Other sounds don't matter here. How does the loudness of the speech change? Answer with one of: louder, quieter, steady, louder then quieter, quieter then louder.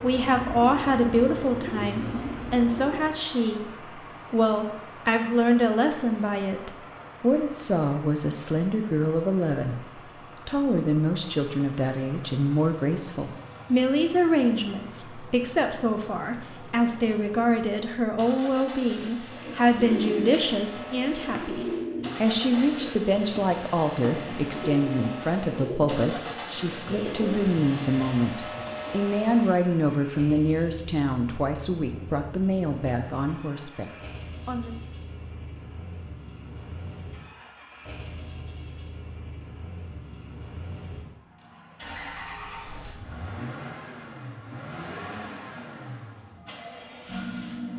steady.